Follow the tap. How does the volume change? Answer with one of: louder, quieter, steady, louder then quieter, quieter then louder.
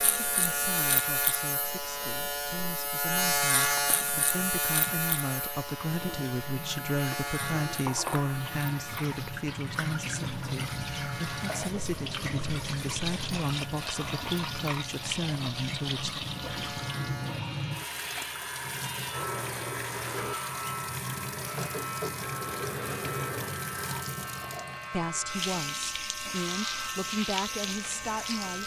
louder.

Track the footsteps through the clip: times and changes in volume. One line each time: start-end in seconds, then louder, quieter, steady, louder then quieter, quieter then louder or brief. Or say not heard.
not heard.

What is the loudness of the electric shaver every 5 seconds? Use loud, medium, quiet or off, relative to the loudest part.
loud, medium, quiet, medium, medium, medium.